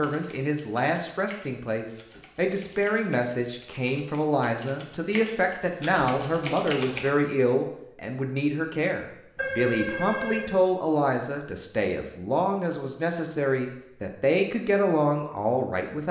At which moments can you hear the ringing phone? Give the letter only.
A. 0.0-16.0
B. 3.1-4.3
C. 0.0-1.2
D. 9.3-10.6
D.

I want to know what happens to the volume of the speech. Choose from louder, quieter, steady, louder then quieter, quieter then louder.
steady.